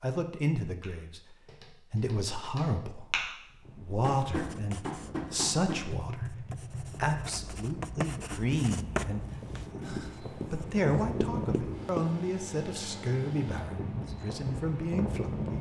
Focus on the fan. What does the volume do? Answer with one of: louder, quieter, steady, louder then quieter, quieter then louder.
louder.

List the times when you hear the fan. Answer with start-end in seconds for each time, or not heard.
3.6-15.5.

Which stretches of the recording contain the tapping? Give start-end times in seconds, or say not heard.
0.8-7.1.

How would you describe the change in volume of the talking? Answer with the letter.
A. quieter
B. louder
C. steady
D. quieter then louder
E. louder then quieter
C.